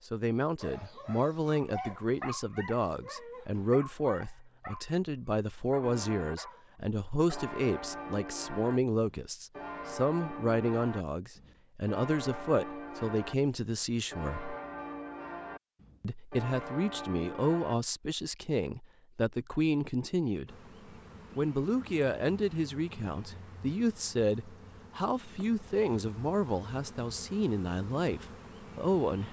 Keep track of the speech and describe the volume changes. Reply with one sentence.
The loudness of the speech stays about the same.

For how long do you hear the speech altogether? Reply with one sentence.
The speech can be heard for 27 seconds in total.